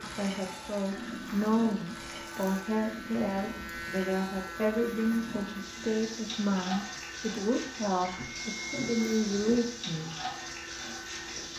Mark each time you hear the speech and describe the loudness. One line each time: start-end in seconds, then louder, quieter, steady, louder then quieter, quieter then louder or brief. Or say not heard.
0.0-10.1 steady.